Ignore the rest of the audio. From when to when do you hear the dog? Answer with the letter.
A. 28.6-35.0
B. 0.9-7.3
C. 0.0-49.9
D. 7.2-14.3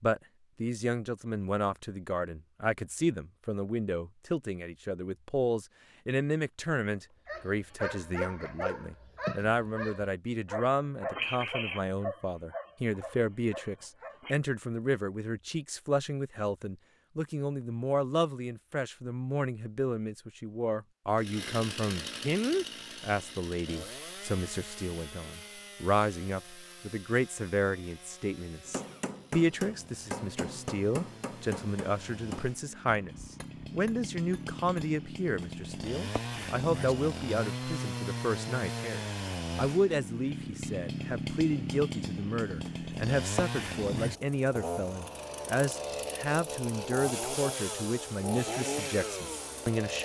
D.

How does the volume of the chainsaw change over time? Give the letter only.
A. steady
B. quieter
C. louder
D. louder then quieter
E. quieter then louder
E.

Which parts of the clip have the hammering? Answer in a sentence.
The hammering can be heard from 28.6 to 35.0 s.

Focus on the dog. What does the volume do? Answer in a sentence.
The loudness of the dog goes down.